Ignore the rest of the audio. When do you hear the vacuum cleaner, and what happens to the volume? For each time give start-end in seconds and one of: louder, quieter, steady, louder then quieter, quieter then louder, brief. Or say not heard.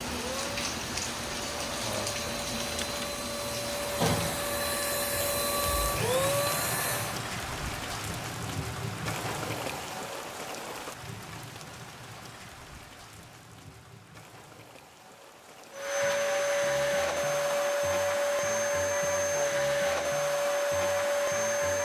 0.2-7.2 louder
15.7-21.8 steady.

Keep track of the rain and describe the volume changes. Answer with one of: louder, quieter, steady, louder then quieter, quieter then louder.
quieter.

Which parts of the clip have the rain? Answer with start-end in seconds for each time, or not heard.
0.0-17.6.